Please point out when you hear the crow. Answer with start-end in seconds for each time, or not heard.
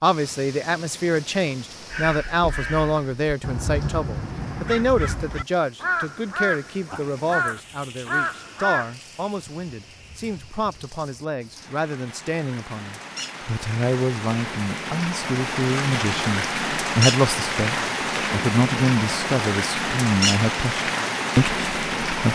1.9-8.9.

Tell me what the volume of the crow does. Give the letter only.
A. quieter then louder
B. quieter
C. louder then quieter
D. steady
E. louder
E.